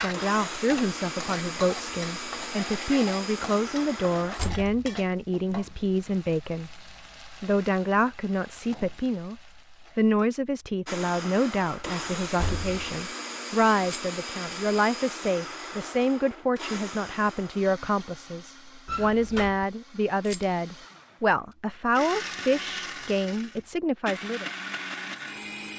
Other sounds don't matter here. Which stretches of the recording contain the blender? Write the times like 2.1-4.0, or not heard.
0.1-4.5, 10.8-25.7.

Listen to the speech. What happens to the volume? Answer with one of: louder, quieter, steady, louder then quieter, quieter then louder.
steady.